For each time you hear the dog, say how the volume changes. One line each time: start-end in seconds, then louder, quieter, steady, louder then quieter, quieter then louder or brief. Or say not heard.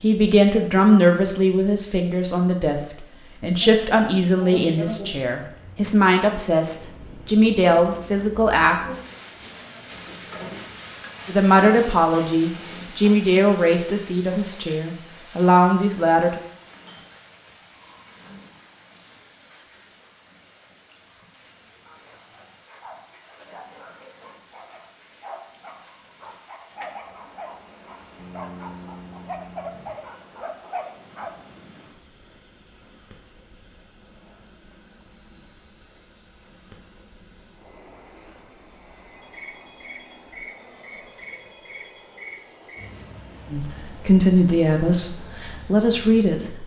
21.9-31.3 louder.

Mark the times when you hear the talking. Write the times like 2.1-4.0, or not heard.
0.0-8.8, 11.2-16.4, 43.5-46.6.